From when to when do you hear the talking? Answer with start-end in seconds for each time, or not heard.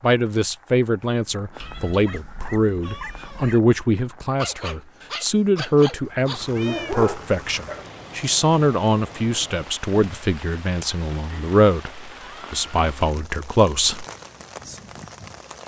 0.0-14.1.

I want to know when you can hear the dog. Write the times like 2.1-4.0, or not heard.
2.0-7.8.